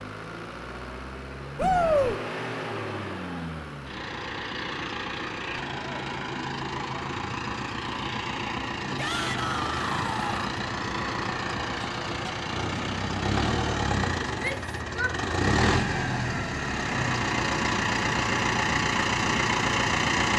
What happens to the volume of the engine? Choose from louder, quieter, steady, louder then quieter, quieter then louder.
louder.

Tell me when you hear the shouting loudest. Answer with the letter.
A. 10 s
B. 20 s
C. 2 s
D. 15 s
C.